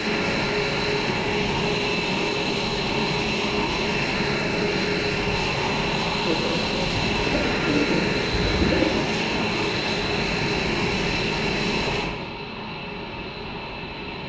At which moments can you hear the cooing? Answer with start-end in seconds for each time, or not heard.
6.2-9.1.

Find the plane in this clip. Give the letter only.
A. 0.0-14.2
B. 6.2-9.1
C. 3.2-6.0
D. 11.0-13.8
A.